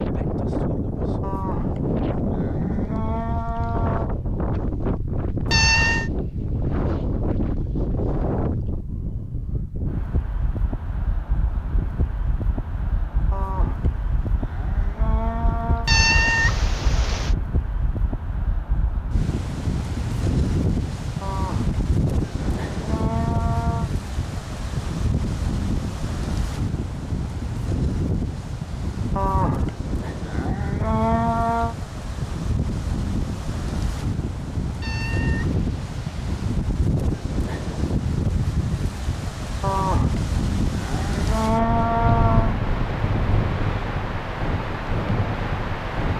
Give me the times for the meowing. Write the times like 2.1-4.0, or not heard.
5.5-6.1, 15.8-17.4, 34.8-36.3.